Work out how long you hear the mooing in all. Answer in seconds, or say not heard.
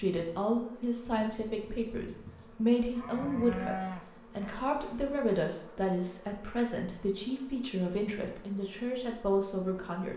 2 s.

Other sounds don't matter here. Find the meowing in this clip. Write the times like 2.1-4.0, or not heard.
not heard.